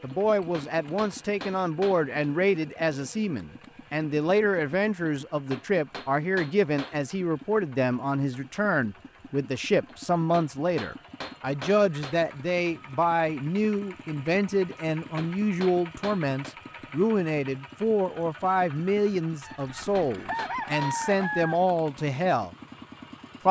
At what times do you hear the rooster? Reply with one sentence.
The rooster can be heard from 19.4 to 21.6 s.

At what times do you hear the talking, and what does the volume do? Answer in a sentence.
You can hear the talking from 0.0 to 22.6 s, at a steady volume.